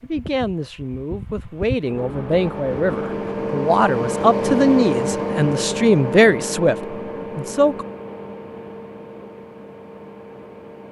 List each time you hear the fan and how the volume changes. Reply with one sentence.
You can hear the fan from 0.0 to 10.8 s, getting louder then quieter.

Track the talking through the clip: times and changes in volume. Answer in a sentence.
You can hear the talking from 0.0 to 7.8 s, getting louder.